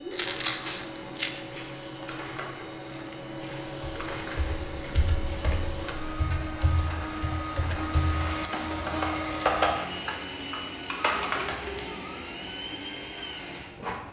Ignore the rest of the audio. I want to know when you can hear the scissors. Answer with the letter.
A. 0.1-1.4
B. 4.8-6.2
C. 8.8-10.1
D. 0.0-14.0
A.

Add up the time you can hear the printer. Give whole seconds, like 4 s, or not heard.
14 s.